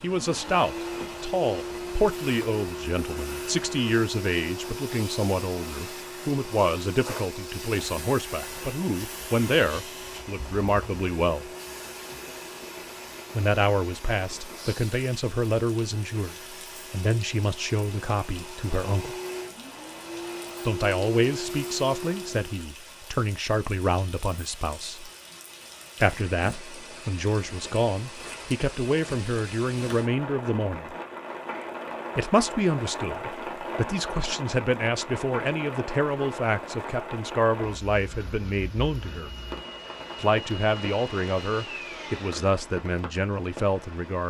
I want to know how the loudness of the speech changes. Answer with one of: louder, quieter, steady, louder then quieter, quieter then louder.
steady.